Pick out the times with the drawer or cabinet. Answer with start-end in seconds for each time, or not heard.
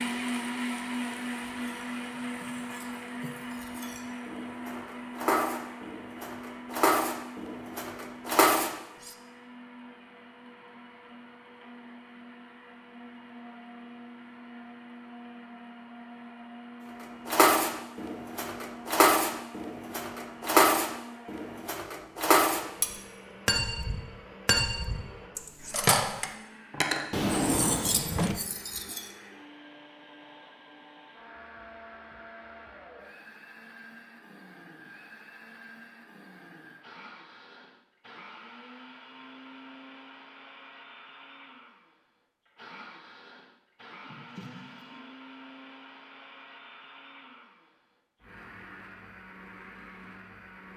2.2-3.4, 27.1-28.4, 44.0-45.0.